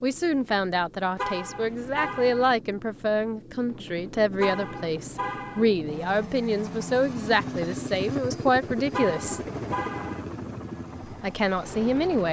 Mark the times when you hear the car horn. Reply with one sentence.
The car horn can be heard from 1.1 to 2.5 s, from 4.3 to 5.7 s and from 8.9 to 10.2 s.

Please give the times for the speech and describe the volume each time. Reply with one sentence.
The speech can be heard from 0.0 to 9.4 s, at a steady volume; and briefly from 11.1 to 12.2 s.